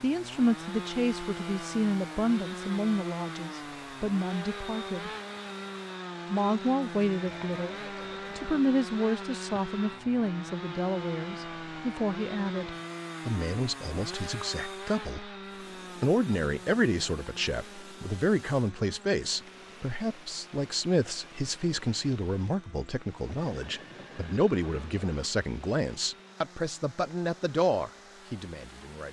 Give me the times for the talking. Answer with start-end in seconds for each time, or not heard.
0.0-5.1, 6.3-7.8, 8.3-15.3, 16.0-29.0.